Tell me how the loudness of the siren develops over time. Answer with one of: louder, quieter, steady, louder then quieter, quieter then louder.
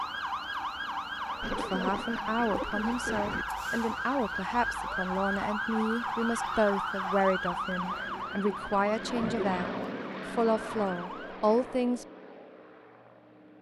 quieter.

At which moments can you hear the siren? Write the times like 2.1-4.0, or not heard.
0.0-11.4.